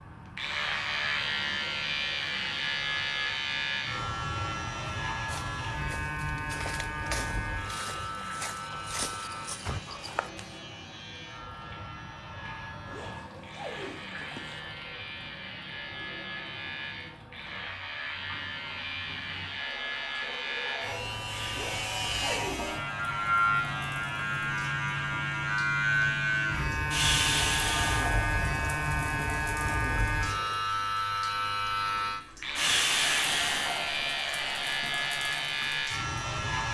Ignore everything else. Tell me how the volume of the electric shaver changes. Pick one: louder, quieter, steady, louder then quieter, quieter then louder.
quieter then louder.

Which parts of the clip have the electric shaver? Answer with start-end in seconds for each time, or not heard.
0.3-36.7.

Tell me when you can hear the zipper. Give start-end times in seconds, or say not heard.
12.8-14.6, 21.5-22.7.